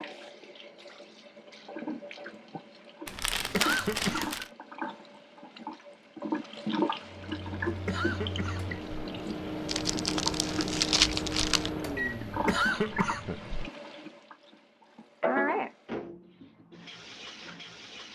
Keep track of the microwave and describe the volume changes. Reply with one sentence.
The volume of the microwave goes up.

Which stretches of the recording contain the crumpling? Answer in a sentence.
The crumpling can be heard from 3.0 to 4.5 s and from 9.7 to 11.7 s.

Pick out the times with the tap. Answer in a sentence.
The tap can be heard from 0.0 to 18.1 s.